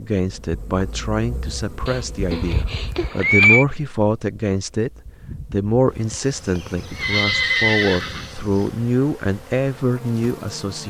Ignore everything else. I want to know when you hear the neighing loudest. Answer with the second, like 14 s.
3 s.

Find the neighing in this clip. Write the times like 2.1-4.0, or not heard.
1.9-3.6, 6.1-8.7.